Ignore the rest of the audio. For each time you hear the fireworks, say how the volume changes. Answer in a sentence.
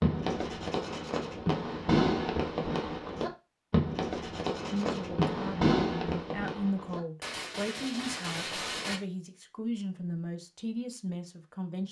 The fireworks can be heard from 0.0 to 9.0 s, getting quieter.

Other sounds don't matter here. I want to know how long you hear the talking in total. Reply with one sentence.
The talking can be heard for 7 seconds in total.